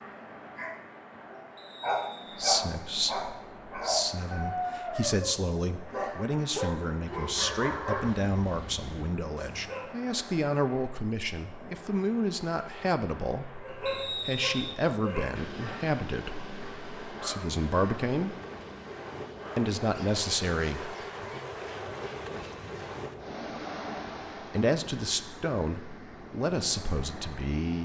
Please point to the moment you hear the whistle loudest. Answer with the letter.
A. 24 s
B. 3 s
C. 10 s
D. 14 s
D.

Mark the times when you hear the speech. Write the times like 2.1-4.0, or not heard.
2.4-18.4, 19.6-20.9, 24.5-27.7.